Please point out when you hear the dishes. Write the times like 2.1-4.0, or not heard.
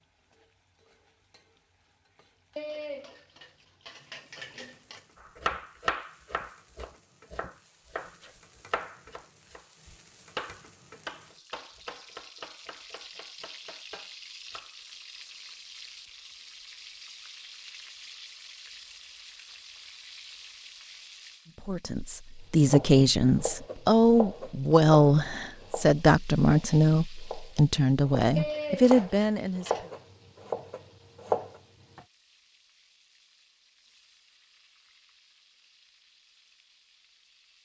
2.5-5.0, 28.4-29.9.